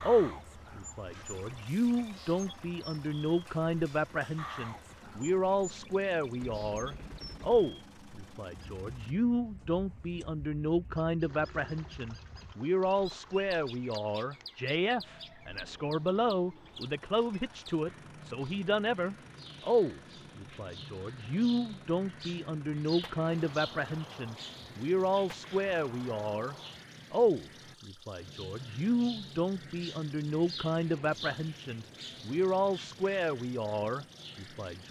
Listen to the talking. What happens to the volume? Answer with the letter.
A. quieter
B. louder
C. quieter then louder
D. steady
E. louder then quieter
D.